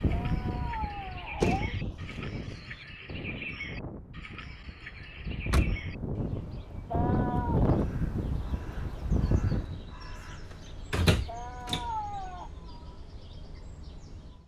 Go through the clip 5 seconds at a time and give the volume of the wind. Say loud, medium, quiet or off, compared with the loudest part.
medium, loud, off.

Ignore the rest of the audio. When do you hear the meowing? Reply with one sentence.
The meowing can be heard from 0.1 to 1.8 s, from 6.9 to 7.6 s and from 11.2 to 12.5 s.